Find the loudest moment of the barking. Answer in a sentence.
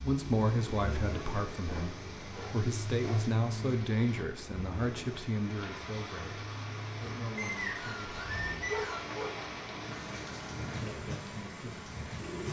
The volume of the barking peaks at 9 seconds.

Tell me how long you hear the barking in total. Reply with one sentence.
The barking can be heard for 2 seconds in total.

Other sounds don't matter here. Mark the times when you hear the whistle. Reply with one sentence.
The whistle can be heard from 7.3 to 9.1 s.